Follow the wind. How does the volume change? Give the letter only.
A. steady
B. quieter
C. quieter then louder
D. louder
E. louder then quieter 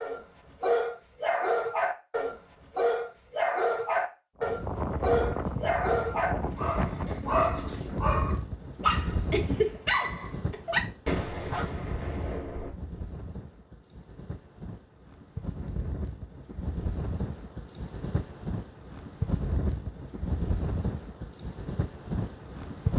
C.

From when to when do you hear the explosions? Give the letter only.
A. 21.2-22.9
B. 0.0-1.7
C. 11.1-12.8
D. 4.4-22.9
C.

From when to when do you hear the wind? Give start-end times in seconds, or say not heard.
4.4-22.9.